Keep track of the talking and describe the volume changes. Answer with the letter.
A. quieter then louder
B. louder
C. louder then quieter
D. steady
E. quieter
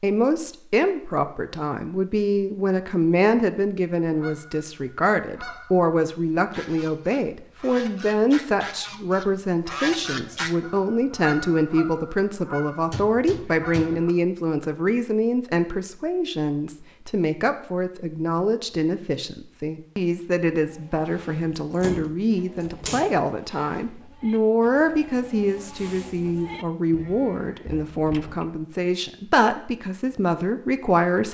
D.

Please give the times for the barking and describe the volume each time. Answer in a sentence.
The barking can't be heard in this clip.